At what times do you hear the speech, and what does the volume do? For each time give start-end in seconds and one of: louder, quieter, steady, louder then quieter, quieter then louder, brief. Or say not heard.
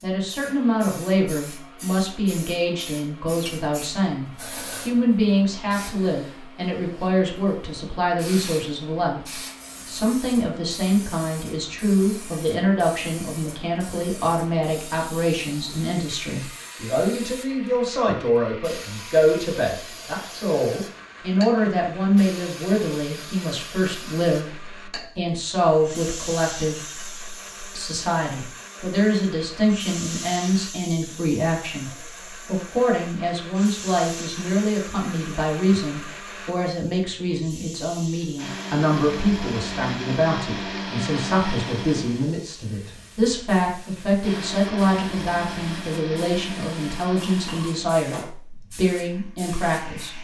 0.0-50.1 steady.